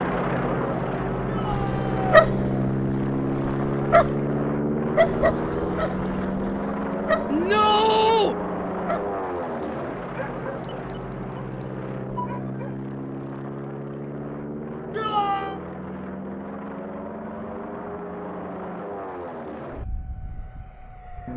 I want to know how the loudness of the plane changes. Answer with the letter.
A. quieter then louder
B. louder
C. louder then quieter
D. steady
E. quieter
E.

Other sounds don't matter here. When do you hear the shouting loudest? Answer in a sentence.
The volume of the shouting peaks at 8 seconds.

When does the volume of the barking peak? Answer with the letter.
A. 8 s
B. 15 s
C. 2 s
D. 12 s
C.